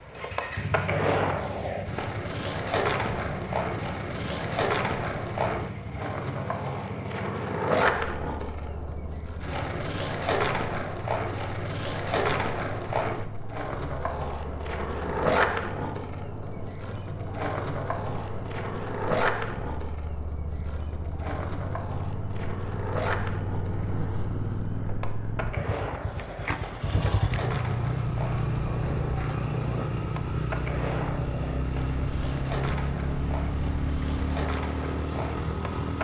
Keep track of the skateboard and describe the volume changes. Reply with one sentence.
The loudness of the skateboard goes down.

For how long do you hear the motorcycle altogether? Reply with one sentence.
You can hear the motorcycle for 36 seconds altogether.